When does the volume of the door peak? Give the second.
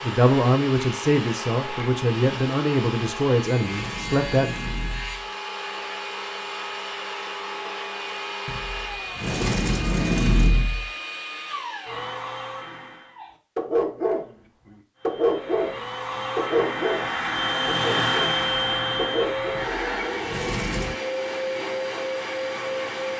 10 s.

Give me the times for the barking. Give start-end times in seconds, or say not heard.
13.2-14.3, 15.1-15.8, 16.4-19.6.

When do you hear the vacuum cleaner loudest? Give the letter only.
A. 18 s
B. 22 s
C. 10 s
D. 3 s
A.